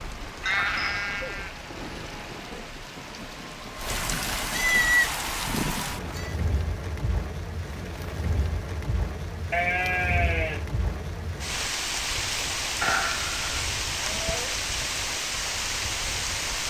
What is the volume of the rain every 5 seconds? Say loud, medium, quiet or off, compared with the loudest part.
medium, medium, loud, loud.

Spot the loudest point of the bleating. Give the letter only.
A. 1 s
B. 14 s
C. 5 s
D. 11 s
C.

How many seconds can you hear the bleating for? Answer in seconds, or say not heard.
6 s.